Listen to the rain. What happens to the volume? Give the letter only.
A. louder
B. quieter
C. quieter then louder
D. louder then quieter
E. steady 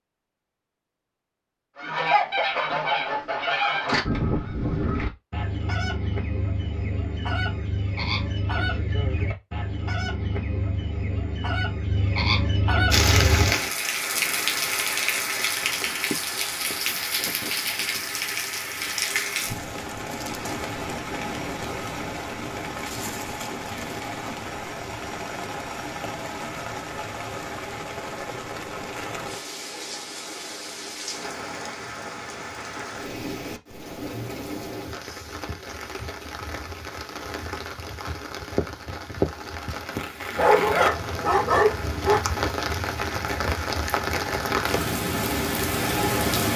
C.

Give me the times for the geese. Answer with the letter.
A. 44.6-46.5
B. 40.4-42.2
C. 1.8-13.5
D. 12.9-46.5
C.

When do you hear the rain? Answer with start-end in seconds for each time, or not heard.
12.9-46.5.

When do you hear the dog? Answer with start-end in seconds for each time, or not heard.
40.4-42.2.